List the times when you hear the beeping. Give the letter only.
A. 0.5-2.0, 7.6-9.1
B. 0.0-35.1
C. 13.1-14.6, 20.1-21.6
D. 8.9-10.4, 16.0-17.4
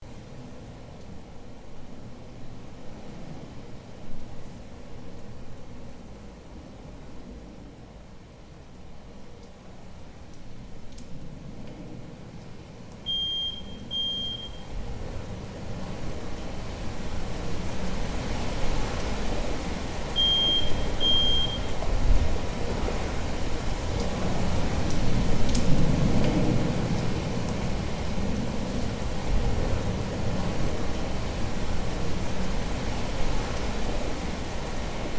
C.